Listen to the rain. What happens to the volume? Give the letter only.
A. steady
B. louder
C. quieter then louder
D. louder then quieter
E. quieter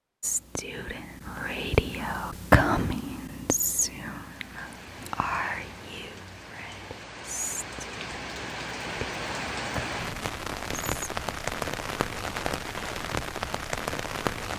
B.